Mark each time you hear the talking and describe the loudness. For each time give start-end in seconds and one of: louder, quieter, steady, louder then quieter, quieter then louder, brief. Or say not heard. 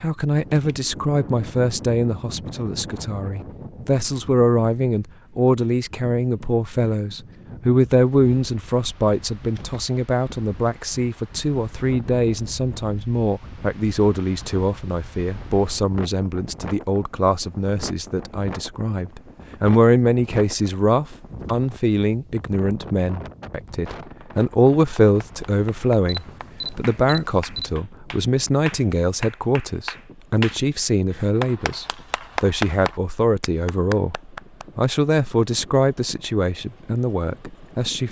0.0-38.0 steady.